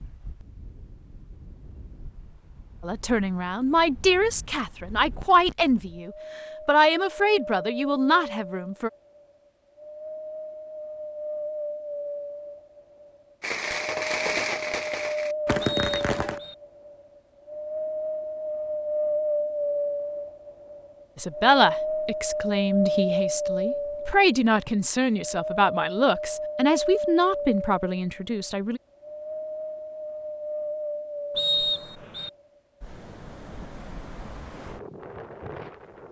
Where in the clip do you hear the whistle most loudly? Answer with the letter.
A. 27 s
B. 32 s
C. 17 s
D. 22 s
B.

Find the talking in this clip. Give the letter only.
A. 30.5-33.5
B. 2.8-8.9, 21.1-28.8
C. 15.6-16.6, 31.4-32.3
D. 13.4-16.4
B.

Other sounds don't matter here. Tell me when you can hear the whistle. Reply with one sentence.
You can hear the whistle from 15.6 to 16.6 s and from 31.4 to 32.3 s.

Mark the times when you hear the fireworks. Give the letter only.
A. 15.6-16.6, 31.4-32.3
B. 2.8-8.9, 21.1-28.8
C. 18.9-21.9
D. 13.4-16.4
D.